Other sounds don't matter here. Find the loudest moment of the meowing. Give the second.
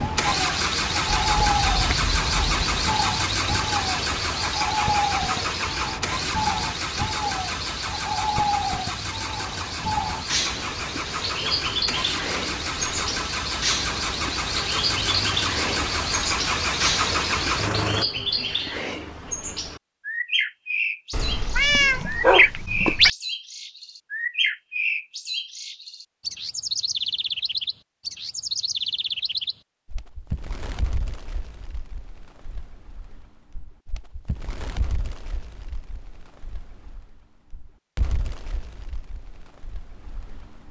22 s.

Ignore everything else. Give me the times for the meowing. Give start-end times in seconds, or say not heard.
1.1-2.9, 21.1-23.1.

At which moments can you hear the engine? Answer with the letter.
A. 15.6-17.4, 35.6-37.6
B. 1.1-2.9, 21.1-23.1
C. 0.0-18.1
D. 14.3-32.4
C.